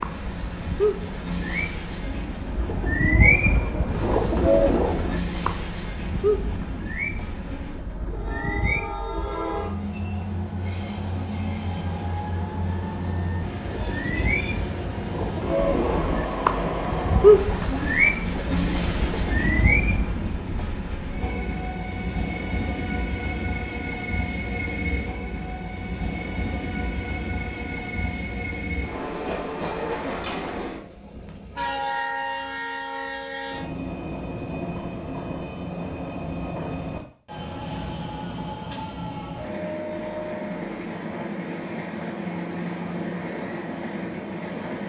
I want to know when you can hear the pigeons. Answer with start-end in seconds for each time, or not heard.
0.0-8.9, 13.6-20.5.